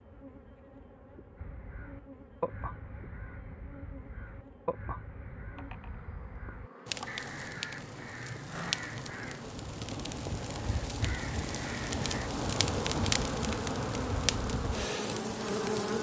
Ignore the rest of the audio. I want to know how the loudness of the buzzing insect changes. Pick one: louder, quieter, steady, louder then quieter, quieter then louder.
louder.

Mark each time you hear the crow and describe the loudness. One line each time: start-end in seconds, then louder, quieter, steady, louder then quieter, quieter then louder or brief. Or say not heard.
1.4-12.3 steady.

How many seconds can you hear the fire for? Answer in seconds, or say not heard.
9 s.